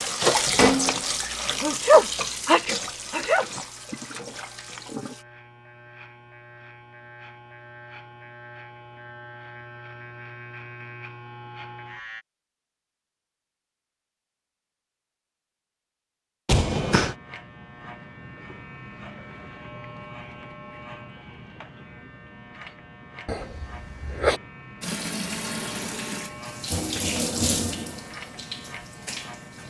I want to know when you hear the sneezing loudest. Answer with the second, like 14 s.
2 s.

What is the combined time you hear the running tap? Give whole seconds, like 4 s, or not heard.
10 s.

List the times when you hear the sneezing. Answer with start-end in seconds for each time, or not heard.
1.6-3.5, 16.4-17.1, 23.2-24.4.